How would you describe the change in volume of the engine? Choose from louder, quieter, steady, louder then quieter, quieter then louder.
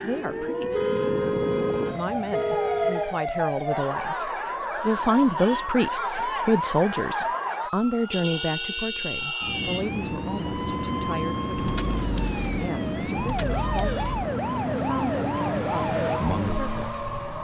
louder.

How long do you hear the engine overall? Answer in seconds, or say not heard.
6 s.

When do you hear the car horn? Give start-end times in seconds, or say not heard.
0.7-3.1, 8.1-9.9, 13.4-14.3.